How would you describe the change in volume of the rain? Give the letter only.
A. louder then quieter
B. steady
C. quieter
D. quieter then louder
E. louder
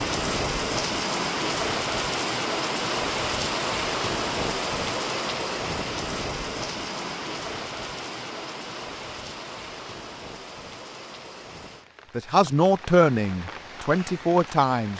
C.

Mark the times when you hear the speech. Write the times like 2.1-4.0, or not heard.
12.2-14.9.